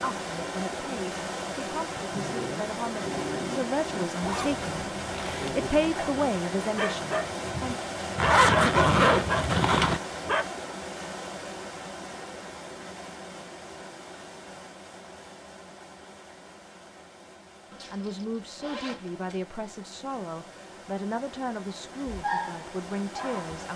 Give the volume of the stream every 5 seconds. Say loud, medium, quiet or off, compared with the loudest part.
loud, loud, medium, quiet, medium.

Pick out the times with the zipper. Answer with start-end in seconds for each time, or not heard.
4.2-5.9, 8.2-10.0, 17.7-19.4.